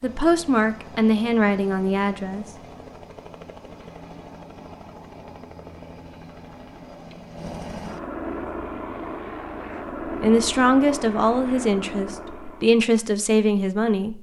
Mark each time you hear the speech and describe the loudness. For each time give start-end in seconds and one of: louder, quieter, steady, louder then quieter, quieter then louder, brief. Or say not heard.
0.0-2.5 brief
10.1-14.1 quieter then louder.